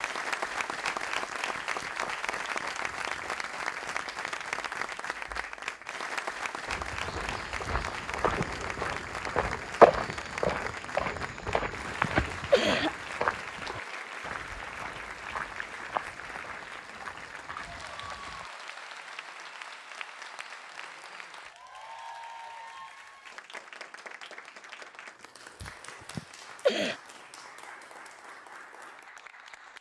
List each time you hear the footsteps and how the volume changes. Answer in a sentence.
You can hear the footsteps from 6.7 to 18.5 s, getting louder then quieter.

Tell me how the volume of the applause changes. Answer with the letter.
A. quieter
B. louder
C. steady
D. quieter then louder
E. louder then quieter
A.